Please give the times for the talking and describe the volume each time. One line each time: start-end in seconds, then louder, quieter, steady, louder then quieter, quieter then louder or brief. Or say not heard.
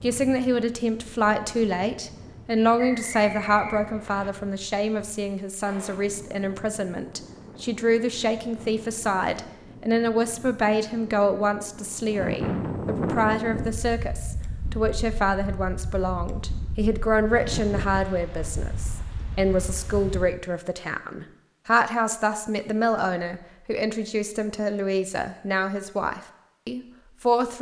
0.0-27.5 steady.